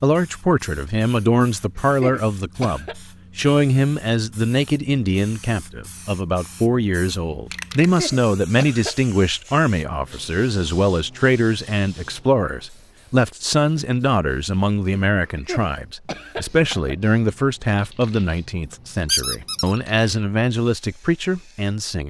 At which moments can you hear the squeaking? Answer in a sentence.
You can hear the squeaking from 19.1 to 19.8 s.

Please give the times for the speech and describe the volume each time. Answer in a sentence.
You can hear the speech from 0.0 to 22.0 s, at a steady volume.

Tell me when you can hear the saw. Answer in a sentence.
The saw can't be heard in this clip.